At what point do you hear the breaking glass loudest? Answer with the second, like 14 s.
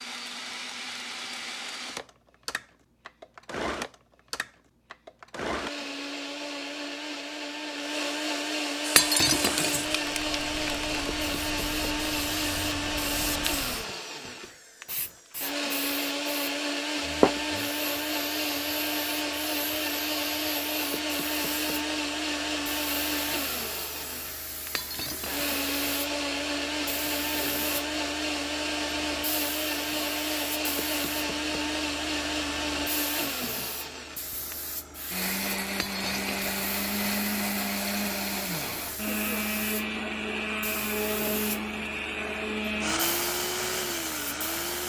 9 s.